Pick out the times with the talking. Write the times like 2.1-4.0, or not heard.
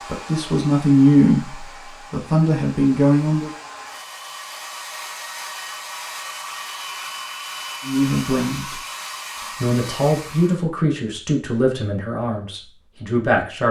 0.1-3.5, 7.8-8.8, 9.6-13.6.